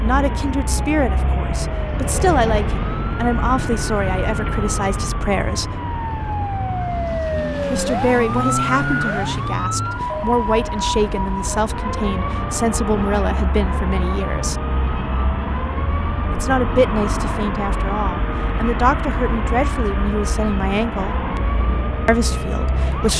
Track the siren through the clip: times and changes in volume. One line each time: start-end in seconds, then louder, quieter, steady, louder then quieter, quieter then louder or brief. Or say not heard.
0.2-23.1 louder then quieter.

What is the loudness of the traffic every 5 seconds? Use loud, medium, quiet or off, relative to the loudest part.
loud, medium, loud, loud, loud.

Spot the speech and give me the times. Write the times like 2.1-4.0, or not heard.
0.0-5.8, 7.7-14.6, 16.3-21.2, 22.1-23.1.